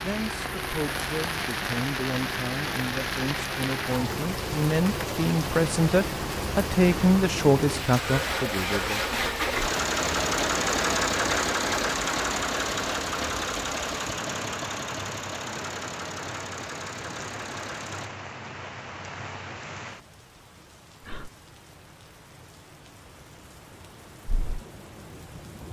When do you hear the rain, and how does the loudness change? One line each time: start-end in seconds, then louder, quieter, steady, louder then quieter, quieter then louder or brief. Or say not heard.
0.0-25.6 quieter.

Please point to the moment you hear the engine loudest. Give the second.
11 s.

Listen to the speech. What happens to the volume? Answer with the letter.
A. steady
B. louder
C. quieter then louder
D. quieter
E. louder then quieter
B.